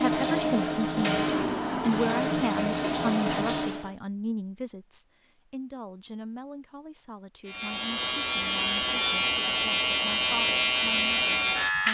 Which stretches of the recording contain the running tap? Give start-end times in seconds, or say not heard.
0.0-4.0.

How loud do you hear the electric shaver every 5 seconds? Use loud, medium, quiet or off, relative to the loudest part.
off, loud, loud.